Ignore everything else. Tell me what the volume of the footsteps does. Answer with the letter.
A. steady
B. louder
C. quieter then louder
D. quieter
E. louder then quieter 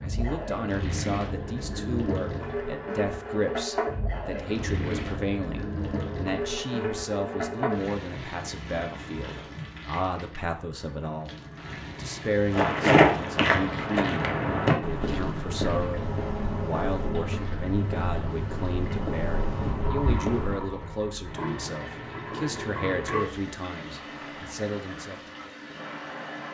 D.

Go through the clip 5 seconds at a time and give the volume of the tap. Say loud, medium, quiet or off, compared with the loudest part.
loud, loud, medium, loud, loud, medium.